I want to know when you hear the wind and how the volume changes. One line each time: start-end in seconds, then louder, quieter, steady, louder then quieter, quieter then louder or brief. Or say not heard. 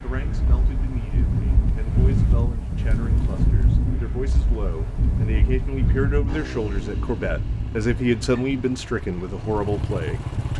0.0-10.5 quieter.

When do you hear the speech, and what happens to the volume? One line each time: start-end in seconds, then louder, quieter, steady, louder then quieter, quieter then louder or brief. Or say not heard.
0.0-10.5 louder.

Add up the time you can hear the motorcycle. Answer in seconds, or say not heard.
4 s.